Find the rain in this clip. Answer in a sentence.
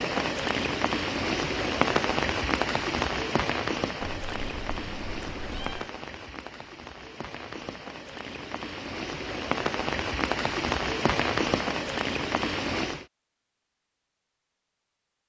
You can hear the rain from 0.0 to 13.1 s.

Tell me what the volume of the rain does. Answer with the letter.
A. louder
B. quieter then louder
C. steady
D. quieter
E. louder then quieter
B.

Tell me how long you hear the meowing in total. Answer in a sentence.
The meowing can be heard for 2 seconds in total.